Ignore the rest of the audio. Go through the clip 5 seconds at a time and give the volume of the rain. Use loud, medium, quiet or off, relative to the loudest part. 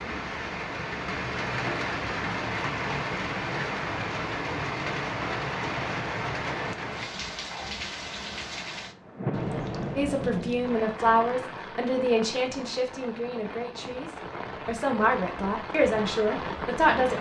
loud, loud, medium, loud.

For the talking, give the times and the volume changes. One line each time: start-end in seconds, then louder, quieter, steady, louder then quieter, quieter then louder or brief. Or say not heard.
9.9-17.1 quieter then louder.